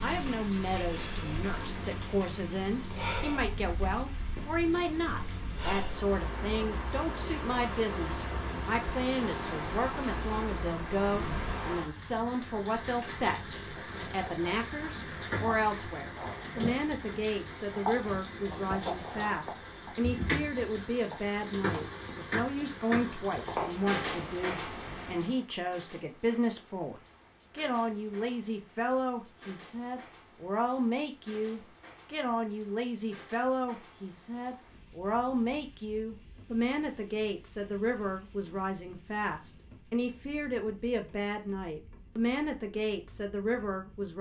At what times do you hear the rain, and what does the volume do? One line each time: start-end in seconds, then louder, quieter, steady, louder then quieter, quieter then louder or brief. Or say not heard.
0.0-44.1 quieter.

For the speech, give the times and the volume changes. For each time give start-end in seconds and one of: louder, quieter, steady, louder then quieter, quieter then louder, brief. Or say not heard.
0.0-44.1 steady.